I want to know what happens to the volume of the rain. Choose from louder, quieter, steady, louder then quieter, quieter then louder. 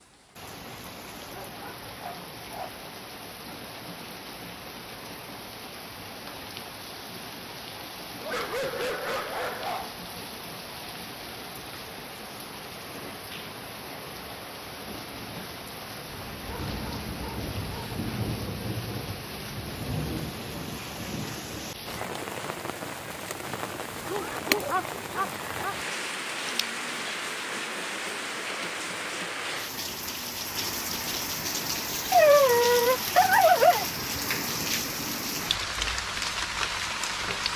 louder.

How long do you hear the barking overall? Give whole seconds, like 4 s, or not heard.
9 s.